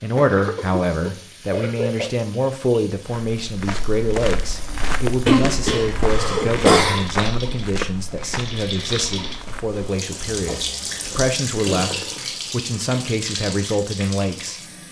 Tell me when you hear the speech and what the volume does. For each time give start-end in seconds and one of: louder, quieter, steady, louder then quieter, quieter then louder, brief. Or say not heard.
0.0-14.6 steady.